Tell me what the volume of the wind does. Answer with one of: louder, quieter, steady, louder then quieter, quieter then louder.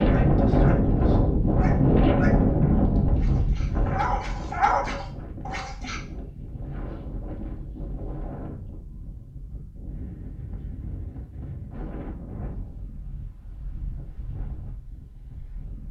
quieter.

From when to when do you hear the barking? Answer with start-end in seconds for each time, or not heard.
0.0-6.0.